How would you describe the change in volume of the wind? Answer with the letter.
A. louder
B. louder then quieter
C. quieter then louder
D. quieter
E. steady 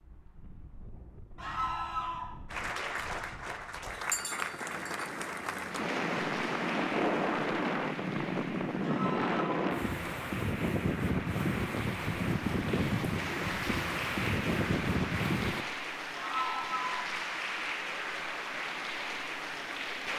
A.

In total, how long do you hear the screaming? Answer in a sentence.
The screaming can be heard for 3 seconds in total.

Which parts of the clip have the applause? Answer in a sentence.
The applause can be heard from 2.5 to 20.1 s.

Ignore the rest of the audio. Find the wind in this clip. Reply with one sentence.
The wind can be heard from 0.0 to 15.7 s.